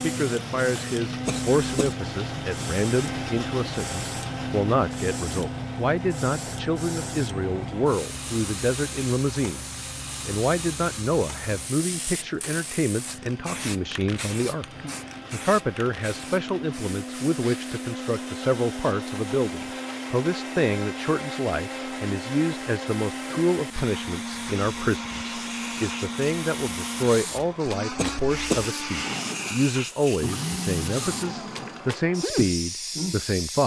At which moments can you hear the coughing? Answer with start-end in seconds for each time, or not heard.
1.2-1.9, 27.9-28.6.